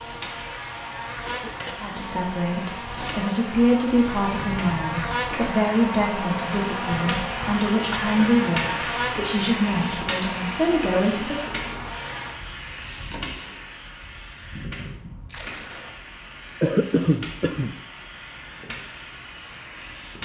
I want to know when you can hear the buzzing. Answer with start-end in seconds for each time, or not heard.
0.0-12.3.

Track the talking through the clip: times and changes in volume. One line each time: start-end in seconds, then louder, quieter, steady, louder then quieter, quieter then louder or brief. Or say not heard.
1.8-11.5 steady.